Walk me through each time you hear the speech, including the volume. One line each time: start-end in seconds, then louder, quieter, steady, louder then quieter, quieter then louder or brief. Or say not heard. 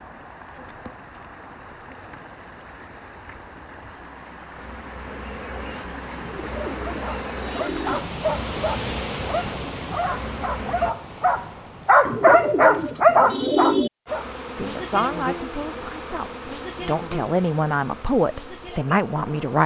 14.6-19.6 quieter then louder.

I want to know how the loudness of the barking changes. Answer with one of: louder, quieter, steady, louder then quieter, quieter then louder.
louder.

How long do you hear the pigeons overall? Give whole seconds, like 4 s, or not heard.
4 s.